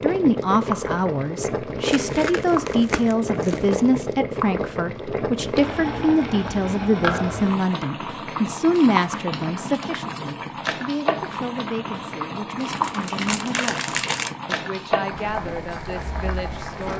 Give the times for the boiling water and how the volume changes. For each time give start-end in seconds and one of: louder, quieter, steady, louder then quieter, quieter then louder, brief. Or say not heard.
0.0-16.9 steady.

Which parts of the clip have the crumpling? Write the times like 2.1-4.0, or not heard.
1.8-3.7, 12.7-14.3.